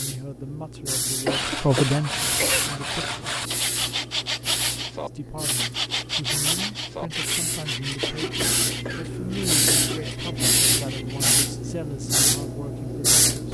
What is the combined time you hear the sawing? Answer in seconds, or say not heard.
10 s.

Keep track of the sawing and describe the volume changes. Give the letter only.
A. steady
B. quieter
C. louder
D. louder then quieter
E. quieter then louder
B.